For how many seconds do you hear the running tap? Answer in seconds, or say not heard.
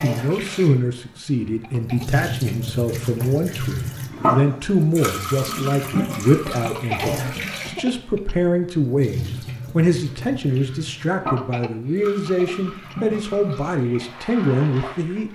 15 s.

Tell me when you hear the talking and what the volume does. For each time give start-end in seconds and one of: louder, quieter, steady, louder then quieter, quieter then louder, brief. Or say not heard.
0.0-15.2 steady.